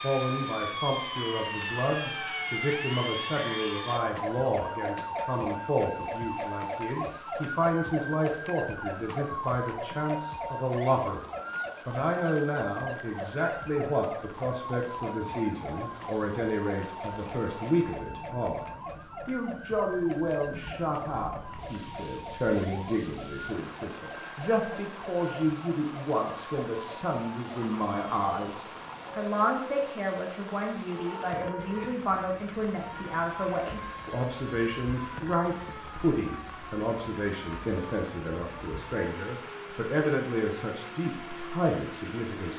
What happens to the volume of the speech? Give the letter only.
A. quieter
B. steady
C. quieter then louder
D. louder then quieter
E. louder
B.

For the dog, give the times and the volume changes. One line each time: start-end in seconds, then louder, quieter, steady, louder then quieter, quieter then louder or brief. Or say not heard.
not heard.